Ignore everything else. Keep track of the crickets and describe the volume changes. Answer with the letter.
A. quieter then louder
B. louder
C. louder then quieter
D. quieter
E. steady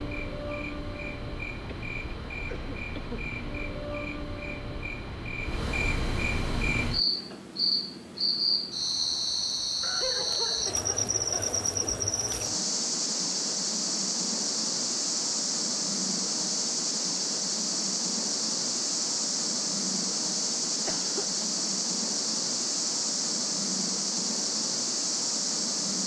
B.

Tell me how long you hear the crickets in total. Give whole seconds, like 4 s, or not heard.
26 s.